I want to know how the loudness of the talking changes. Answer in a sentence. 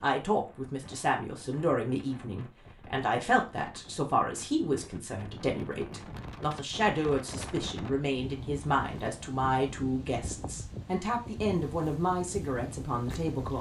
The volume of the talking stays about the same.